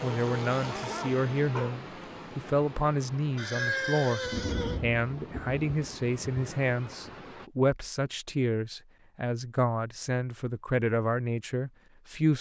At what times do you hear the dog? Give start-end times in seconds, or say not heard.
0.1-1.8.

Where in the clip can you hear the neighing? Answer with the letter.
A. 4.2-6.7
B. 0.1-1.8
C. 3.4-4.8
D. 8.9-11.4
C.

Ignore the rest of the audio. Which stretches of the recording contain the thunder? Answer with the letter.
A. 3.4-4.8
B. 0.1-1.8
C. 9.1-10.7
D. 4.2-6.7
D.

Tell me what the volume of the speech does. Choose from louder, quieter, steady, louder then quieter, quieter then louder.
steady.